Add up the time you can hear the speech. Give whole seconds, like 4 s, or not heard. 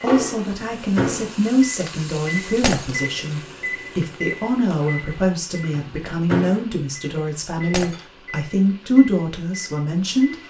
10 s.